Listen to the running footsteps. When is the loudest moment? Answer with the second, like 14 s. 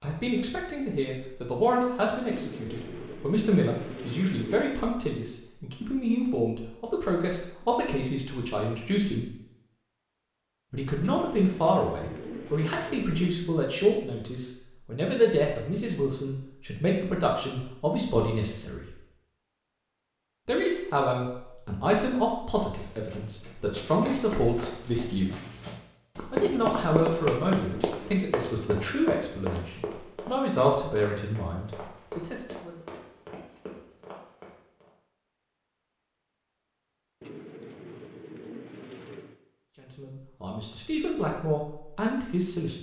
27 s.